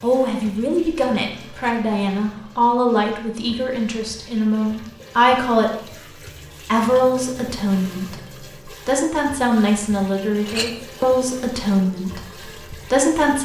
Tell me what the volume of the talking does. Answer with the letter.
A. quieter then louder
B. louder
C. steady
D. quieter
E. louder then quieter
C.